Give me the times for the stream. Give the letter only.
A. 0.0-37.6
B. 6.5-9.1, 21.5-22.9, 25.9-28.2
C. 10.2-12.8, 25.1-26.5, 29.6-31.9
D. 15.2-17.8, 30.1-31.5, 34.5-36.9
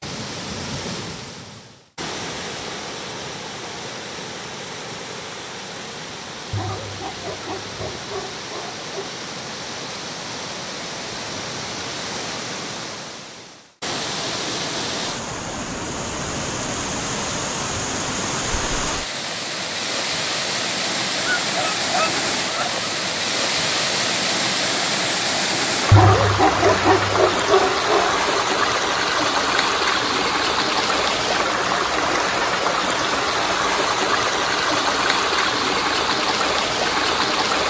A.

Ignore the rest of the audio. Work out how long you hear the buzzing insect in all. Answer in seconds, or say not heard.
not heard.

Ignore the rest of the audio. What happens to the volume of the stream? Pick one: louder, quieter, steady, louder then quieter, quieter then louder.
louder.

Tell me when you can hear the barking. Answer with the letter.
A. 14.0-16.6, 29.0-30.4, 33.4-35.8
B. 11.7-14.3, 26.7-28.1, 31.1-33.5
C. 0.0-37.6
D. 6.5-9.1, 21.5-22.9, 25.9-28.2
D.